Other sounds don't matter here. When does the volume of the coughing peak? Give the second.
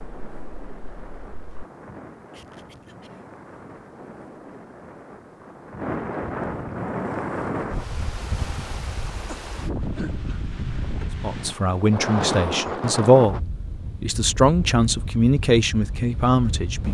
10 s.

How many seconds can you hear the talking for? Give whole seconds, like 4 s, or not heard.
5 s.